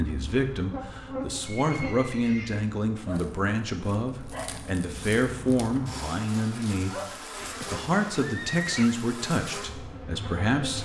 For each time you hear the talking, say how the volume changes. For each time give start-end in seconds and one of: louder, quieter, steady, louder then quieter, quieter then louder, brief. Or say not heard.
0.0-10.7 steady.